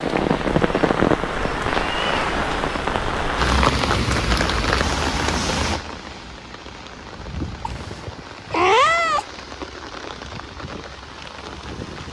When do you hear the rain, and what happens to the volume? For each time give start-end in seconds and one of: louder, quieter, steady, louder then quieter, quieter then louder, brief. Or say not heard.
0.0-12.0 quieter.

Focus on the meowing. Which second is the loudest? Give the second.
9 s.